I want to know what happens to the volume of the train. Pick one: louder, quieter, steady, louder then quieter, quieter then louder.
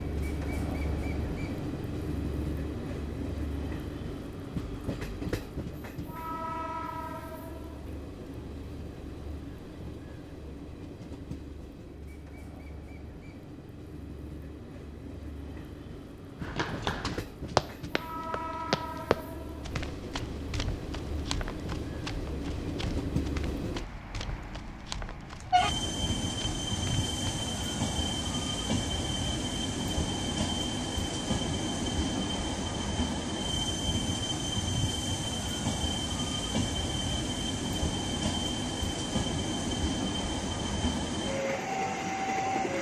quieter then louder.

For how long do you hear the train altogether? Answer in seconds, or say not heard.
43 s.